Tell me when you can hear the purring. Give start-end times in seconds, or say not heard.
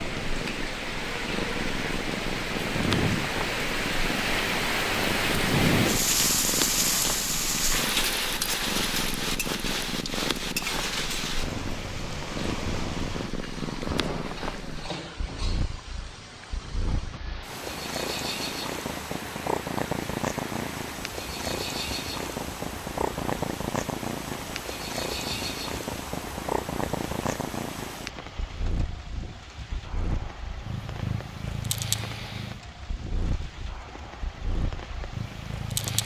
0.0-36.0.